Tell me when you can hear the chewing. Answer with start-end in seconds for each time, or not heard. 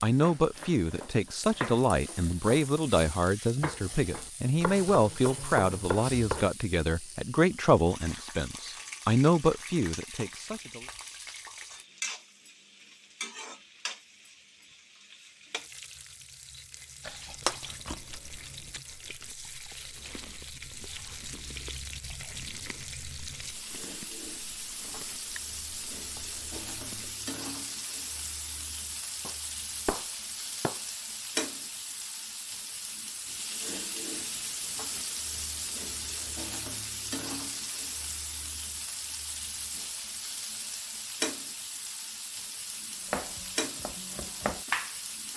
17.0-27.1.